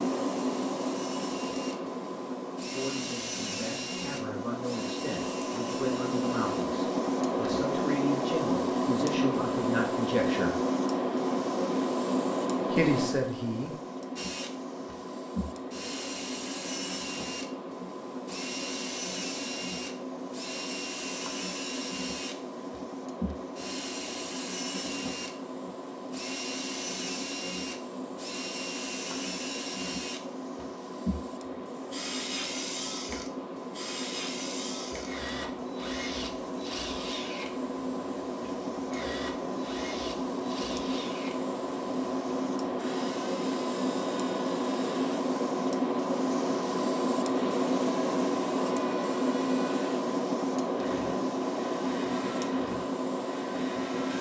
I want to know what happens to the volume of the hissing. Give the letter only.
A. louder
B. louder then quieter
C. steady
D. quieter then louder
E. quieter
D.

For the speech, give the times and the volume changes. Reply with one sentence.
You can hear the speech from 2.7 to 10.6 s, getting louder; and briefly from 12.7 to 13.7 s.